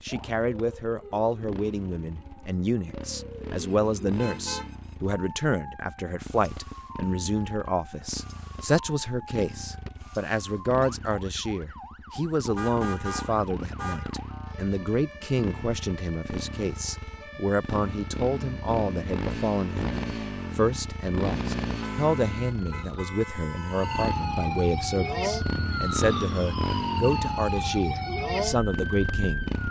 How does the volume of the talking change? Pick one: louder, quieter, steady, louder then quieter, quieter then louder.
steady.